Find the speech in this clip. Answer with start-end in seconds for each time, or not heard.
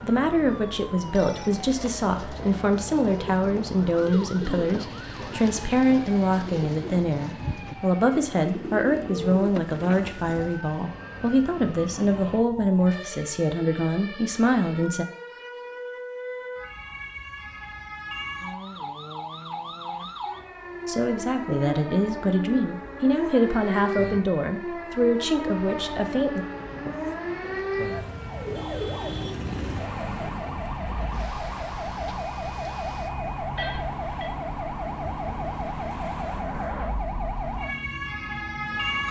0.0-15.1, 20.9-26.4.